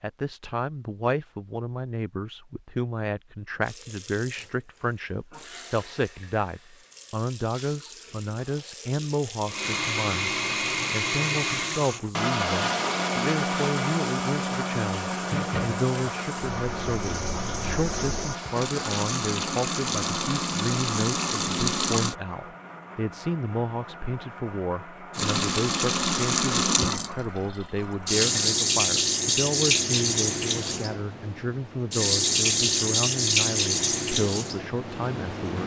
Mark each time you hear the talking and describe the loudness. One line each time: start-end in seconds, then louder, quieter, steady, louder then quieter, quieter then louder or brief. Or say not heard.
0.0-35.6 steady.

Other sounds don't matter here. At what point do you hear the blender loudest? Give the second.
13 s.